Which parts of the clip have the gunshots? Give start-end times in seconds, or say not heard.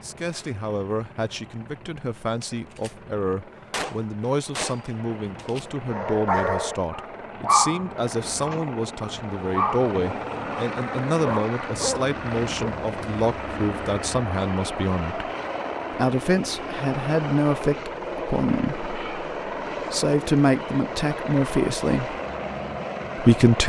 2.4-2.9, 3.7-5.7.